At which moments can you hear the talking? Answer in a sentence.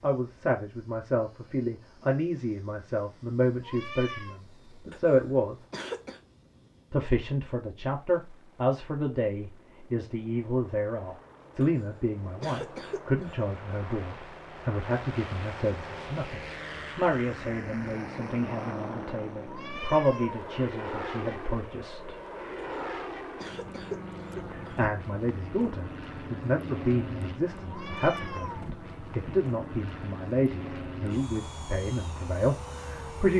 You can hear the talking from 0.0 to 5.6 s, from 6.9 to 22.1 s and from 24.5 to 33.3 s.